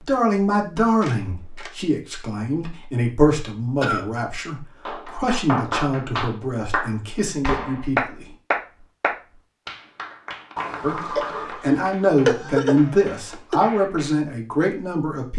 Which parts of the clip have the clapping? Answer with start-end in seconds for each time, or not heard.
4.8-14.2.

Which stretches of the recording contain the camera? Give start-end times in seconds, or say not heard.
1.0-1.8, 10.6-11.7.